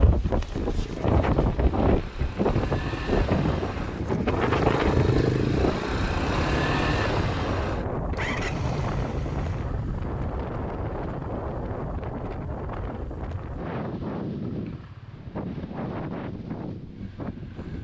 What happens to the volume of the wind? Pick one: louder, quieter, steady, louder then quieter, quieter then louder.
quieter.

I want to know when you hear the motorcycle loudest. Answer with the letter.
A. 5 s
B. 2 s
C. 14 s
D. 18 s
A.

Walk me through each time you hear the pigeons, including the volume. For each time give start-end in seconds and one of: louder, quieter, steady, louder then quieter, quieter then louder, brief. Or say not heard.
not heard.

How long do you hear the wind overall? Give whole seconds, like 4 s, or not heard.
18 s.